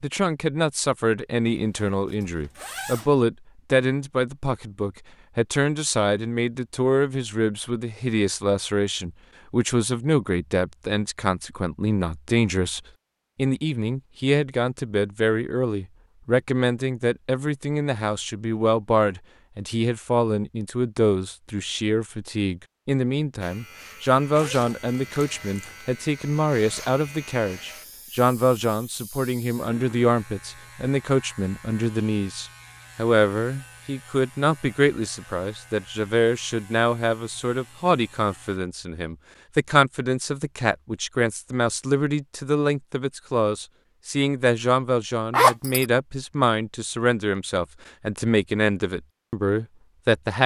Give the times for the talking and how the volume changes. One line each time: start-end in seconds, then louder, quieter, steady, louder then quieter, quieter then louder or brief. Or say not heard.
0.0-50.4 steady.